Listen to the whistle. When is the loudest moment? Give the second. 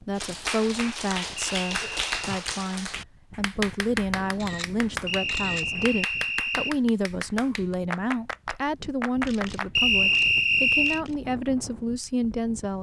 10 s.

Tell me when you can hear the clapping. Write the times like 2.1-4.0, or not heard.
0.1-9.7.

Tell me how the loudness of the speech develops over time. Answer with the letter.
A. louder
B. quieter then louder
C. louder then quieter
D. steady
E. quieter
D.